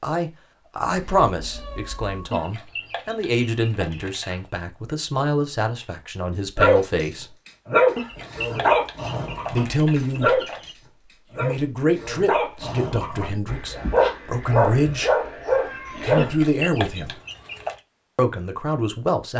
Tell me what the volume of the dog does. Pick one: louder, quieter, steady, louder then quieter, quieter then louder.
quieter then louder.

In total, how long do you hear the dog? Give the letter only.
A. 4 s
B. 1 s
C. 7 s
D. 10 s
D.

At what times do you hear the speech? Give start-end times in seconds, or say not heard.
0.0-7.3, 9.5-10.4, 11.3-15.1, 15.9-17.1, 18.1-19.3.